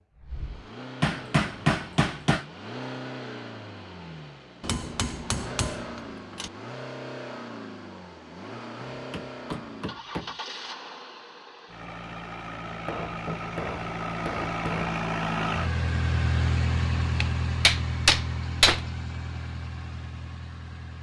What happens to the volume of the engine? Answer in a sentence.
The loudness of the engine goes up.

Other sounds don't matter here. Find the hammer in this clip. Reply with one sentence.
You can hear the hammer from 1.0 to 2.5 s, from 4.6 to 6.5 s, from 8.8 to 10.3 s, from 12.8 to 14.9 s and from 17.2 to 18.9 s.